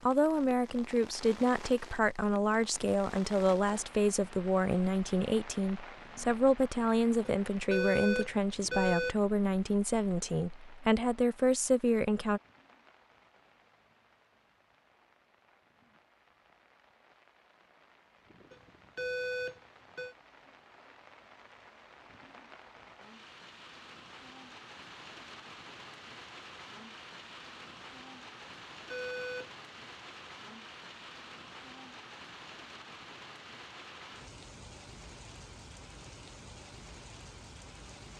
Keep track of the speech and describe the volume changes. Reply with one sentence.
The loudness of the speech stays about the same.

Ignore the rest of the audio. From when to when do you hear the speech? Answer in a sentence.
The speech can be heard from 0.0 to 12.4 s.